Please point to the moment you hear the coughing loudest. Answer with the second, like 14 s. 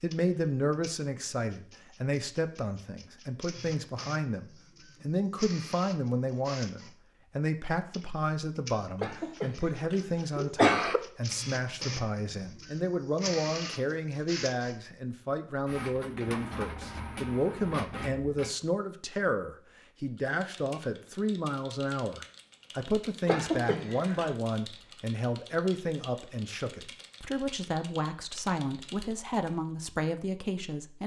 11 s.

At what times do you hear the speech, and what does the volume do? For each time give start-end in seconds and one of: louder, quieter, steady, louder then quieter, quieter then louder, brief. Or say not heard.
0.0-31.0 steady.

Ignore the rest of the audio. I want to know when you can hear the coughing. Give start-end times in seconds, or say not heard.
9.0-11.0, 23.2-24.3.